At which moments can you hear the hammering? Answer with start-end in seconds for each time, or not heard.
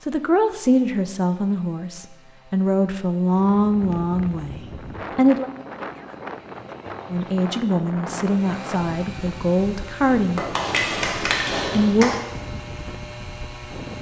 10.3-12.2.